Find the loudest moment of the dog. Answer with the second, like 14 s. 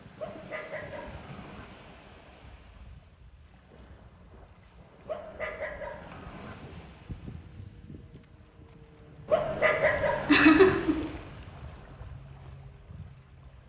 10 s.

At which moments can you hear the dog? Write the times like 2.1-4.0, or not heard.
0.1-1.6, 5.0-6.5, 9.2-10.8.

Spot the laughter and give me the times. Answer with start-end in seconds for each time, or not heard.
10.2-10.9.